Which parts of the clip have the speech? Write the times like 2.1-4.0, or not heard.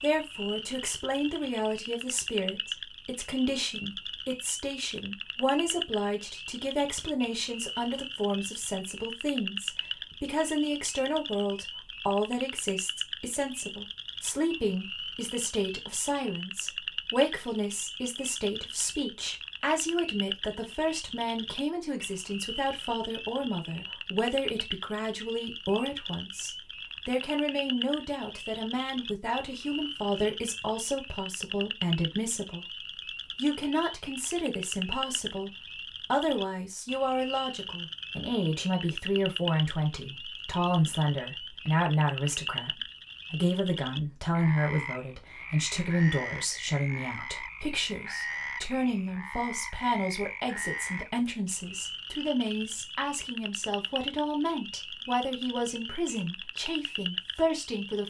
0.0-32.6, 33.4-58.0.